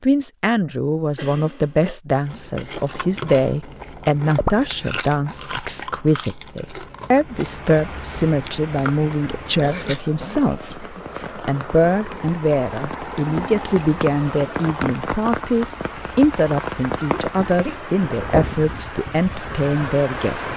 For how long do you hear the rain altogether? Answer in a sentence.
The rain can be heard for 13 seconds in total.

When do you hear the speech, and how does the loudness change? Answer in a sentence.
You can hear the speech from 0.0 to 20.5 s, at a steady volume.